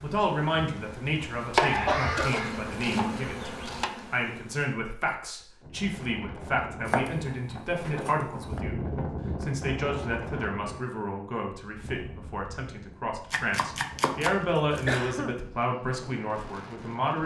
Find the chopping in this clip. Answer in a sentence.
The chopping can be heard from 1.5 to 3.9 s, from 6.8 to 8.6 s and from 13.3 to 15.1 s.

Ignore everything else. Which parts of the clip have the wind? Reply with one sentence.
The wind can be heard from 5.6 to 17.2 s.